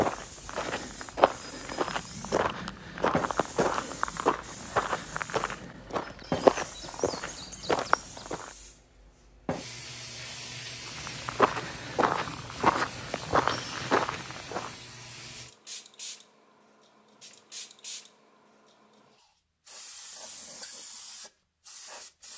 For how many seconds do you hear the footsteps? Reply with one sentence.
The footsteps can be heard for 12 seconds in total.